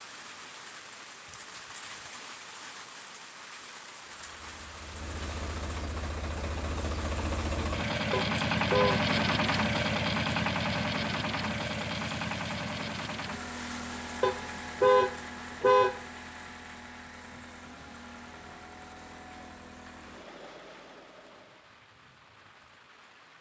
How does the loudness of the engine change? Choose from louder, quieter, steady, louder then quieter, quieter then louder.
louder then quieter.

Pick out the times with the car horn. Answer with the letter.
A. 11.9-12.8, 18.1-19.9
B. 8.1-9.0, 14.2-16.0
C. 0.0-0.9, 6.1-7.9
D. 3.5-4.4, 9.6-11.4
B.